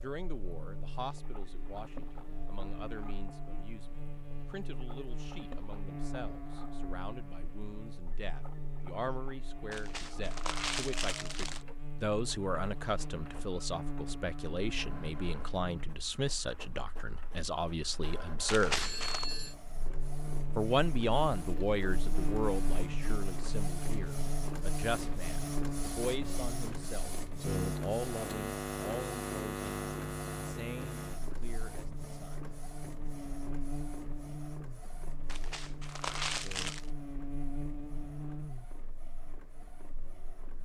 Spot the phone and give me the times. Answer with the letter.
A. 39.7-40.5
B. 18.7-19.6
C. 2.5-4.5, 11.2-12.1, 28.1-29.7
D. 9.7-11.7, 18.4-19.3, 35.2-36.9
B.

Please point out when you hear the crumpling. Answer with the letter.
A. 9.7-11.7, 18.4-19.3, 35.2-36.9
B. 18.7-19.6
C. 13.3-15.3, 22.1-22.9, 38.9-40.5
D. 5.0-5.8
A.